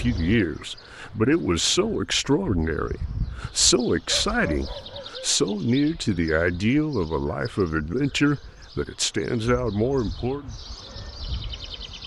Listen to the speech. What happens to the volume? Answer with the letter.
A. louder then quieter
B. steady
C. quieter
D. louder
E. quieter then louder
B.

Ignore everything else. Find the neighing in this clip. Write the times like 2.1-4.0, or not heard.
not heard.